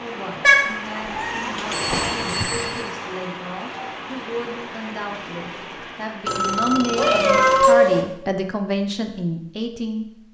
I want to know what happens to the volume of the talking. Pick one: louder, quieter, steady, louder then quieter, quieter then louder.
louder.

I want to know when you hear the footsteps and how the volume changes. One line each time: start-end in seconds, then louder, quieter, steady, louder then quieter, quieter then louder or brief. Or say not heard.
not heard.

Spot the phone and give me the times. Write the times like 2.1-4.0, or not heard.
1.7-2.9, 6.2-7.8.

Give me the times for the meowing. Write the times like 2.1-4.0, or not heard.
0.4-1.9, 7.0-8.0.